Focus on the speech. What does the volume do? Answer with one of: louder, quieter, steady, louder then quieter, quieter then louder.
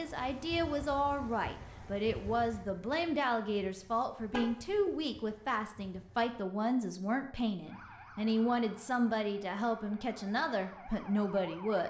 steady.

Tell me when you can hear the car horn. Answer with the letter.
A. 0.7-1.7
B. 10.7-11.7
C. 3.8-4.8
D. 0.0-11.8
C.